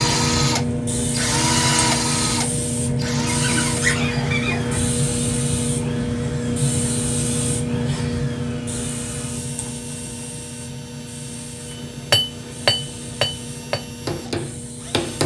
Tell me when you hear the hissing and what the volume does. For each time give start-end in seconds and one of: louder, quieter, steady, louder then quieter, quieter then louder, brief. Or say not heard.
0.0-15.2 quieter.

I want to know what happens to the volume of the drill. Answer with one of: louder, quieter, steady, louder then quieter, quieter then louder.
quieter.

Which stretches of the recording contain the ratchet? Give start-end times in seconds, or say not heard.
not heard.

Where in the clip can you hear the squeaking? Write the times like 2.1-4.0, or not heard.
3.2-4.8.